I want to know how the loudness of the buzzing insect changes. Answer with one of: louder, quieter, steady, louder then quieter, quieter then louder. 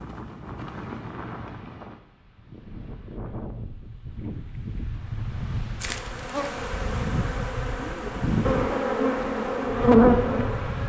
louder.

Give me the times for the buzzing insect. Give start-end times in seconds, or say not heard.
5.8-10.8.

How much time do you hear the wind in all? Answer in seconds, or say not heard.
11 s.